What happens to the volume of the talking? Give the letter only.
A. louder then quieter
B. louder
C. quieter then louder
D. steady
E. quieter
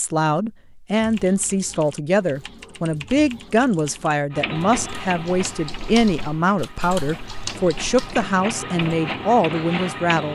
D.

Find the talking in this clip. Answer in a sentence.
You can hear the talking from 0.0 to 10.3 s.